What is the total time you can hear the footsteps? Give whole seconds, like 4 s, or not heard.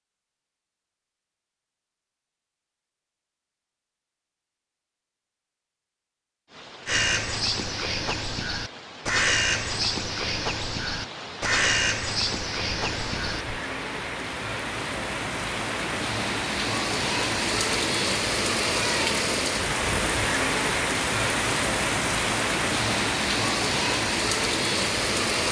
not heard.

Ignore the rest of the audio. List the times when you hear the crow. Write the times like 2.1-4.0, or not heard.
6.8-13.6.